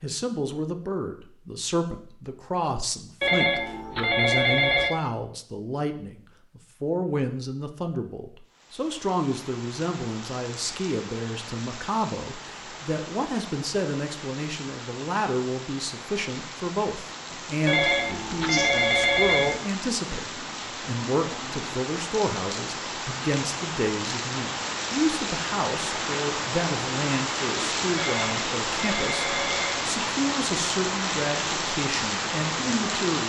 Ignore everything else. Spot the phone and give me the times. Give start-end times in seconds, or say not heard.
3.2-5.0, 17.6-19.6, 27.9-29.9.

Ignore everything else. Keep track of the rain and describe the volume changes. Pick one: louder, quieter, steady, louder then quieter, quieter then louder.
louder.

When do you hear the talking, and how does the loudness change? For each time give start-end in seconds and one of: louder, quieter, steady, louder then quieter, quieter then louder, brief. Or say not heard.
0.0-33.2 steady.